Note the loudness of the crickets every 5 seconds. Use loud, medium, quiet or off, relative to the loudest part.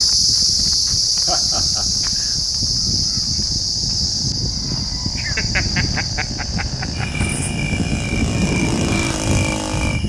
loud, medium.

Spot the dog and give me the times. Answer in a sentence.
The dog can't be heard in this clip.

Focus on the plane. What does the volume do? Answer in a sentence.
The loudness of the plane goes up.